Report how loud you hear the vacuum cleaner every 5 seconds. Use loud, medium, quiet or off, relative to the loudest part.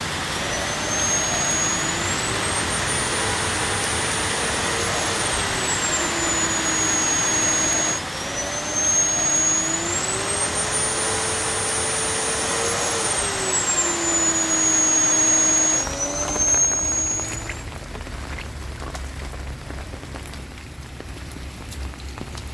medium, loud, loud, loud, off.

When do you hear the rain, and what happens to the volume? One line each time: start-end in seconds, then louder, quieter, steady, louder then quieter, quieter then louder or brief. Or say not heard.
0.0-22.5 quieter.